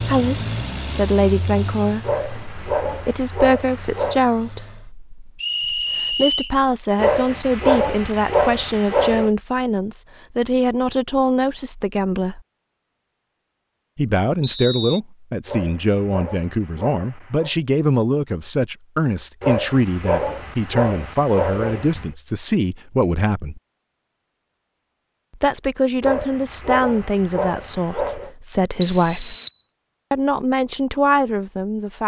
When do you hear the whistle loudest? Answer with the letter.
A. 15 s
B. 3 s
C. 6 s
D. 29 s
D.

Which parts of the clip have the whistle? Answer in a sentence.
You can hear the whistle from 5.4 to 6.5 s, from 14.4 to 15.0 s and from 28.8 to 29.6 s.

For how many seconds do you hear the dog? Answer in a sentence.
You can hear the dog for 12 seconds altogether.